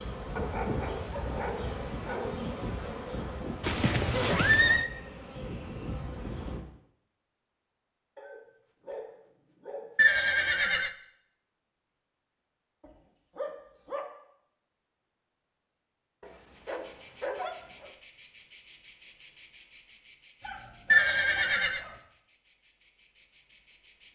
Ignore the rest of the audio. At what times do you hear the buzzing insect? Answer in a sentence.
You can hear the buzzing insect from 0.0 to 6.7 s and from 16.5 to 24.1 s.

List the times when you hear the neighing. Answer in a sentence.
The neighing can be heard from 3.6 to 4.9 s, from 9.9 to 10.9 s and from 20.9 to 21.8 s.